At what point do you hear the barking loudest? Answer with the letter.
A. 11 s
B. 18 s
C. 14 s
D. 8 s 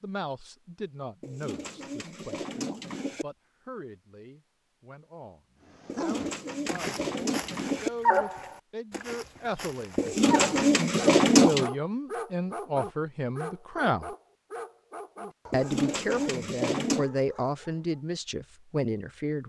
D.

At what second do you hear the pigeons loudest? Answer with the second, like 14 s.
11 s.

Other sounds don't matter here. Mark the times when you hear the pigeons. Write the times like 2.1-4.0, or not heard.
1.2-3.2, 5.8-7.9, 9.9-11.7, 15.5-17.1.